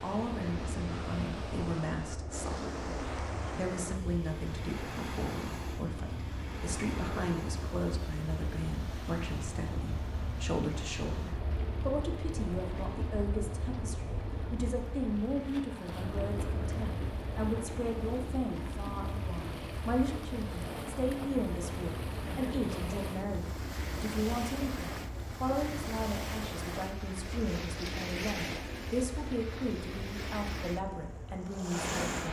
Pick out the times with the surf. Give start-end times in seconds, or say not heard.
0.0-32.2.